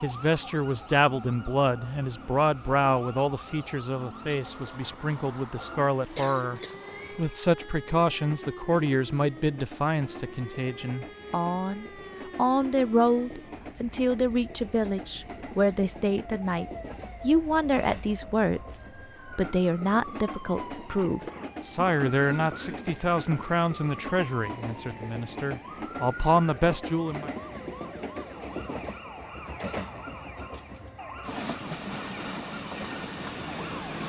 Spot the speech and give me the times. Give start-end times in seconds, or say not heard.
0.0-27.3.